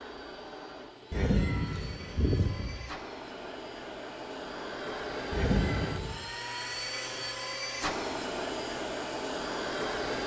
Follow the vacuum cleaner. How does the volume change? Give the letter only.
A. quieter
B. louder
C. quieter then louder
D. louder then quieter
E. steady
B.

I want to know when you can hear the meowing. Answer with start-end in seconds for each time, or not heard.
1.1-2.8, 5.3-6.2.